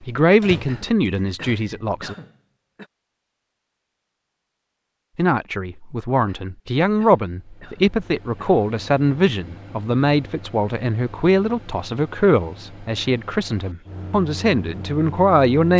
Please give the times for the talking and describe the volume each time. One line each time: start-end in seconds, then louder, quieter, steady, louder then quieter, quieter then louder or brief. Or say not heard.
0.1-2.1 brief
5.2-15.7 steady.